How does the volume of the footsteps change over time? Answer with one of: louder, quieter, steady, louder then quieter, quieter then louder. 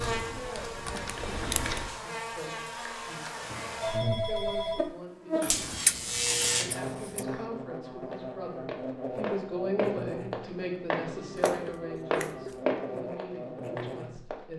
louder then quieter.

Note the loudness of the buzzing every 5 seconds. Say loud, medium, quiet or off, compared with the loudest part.
loud, loud, medium.